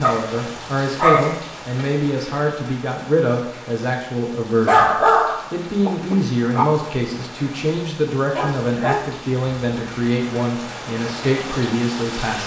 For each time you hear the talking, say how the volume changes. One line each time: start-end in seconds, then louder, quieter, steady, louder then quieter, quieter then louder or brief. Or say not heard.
0.0-12.4 steady.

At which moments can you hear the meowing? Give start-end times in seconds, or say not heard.
not heard.